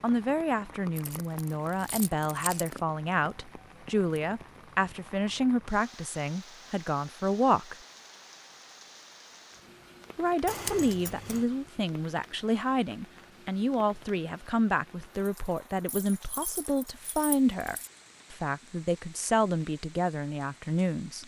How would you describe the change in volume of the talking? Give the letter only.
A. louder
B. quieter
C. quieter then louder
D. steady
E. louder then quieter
D.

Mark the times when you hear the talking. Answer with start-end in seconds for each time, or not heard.
0.0-7.8, 10.2-21.2.